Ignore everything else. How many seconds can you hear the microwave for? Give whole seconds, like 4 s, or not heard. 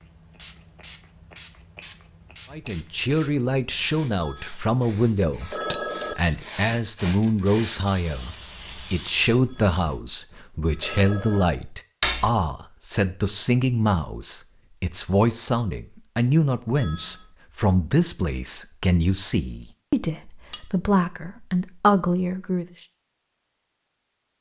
not heard.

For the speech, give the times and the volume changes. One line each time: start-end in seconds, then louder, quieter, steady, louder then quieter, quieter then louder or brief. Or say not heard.
2.5-22.6 steady.